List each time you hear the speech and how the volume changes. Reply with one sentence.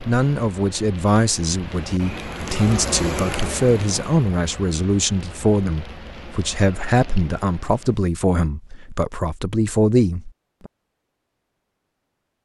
The speech can be heard from 0.1 to 10.7 s, at a steady volume.